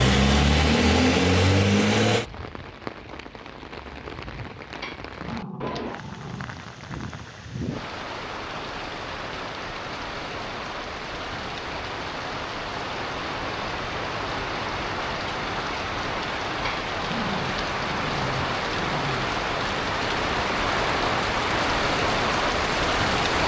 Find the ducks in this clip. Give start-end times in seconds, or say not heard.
not heard.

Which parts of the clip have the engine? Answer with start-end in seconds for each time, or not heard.
0.0-2.2.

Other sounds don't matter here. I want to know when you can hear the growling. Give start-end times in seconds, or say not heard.
4.8-6.5, 16.6-19.3.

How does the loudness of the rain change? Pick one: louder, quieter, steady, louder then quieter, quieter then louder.
louder.